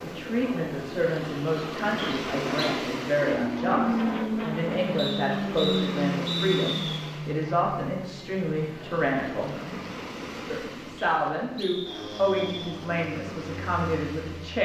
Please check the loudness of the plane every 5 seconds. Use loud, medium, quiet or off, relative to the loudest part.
loud, loud, medium.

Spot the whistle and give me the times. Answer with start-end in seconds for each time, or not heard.
1.9-2.7, 5.0-6.8, 10.9-12.8.